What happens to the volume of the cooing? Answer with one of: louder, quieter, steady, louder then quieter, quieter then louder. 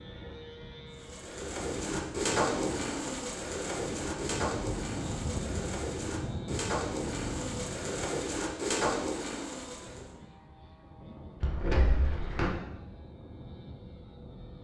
quieter then louder.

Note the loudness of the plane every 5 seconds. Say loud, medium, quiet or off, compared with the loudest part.
loud, loud, medium.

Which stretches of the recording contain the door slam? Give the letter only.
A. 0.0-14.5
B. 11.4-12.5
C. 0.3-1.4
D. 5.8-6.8
B.